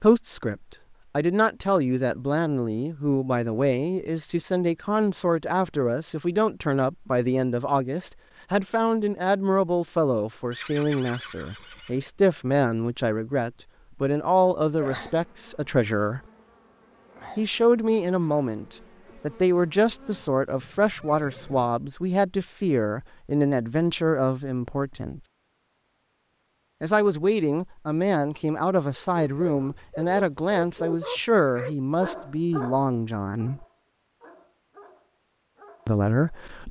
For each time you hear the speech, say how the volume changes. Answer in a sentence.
The speech can be heard from 0.0 to 16.2 s, at a steady volume; from 17.4 to 25.2 s, at a steady volume; from 26.8 to 33.6 s, at a steady volume; and briefly from 35.9 to 36.6 s.